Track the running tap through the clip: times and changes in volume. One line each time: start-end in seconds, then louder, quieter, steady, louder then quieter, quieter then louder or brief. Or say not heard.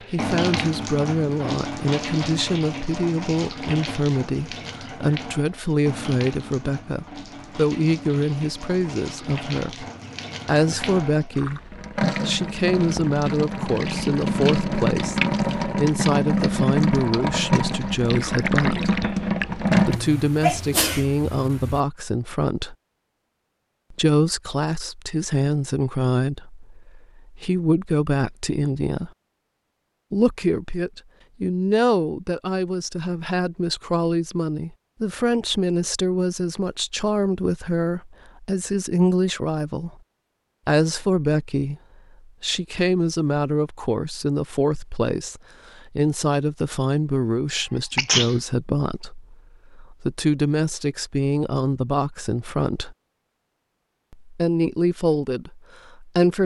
0.0-20.0 quieter then louder.